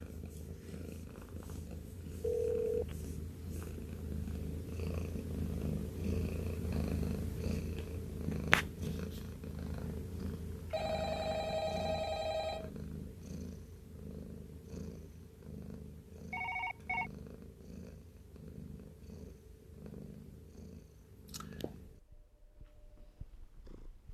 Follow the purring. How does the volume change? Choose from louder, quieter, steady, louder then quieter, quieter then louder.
louder then quieter.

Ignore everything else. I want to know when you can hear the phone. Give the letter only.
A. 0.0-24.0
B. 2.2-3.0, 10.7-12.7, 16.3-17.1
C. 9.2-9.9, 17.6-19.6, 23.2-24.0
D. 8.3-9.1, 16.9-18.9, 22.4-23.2
B.